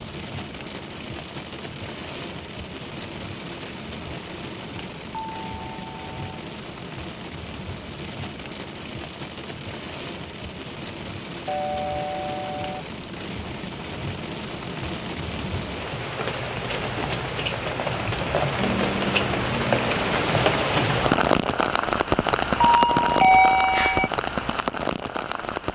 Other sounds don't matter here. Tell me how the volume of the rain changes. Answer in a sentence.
The volume of the rain goes up.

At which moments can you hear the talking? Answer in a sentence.
You can't hear the talking here.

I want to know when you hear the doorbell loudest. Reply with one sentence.
The volume of the doorbell peaks at 23 seconds.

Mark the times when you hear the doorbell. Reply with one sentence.
You can hear the doorbell from 5.2 to 6.4 s, from 11.4 to 12.8 s and from 22.6 to 24.1 s.